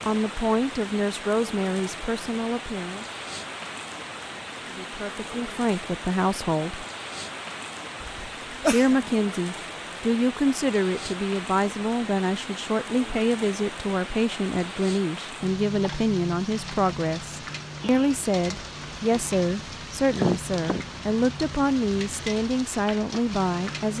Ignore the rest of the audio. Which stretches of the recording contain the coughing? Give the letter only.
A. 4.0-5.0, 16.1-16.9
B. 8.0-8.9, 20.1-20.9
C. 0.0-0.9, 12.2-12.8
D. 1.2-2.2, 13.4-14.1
B.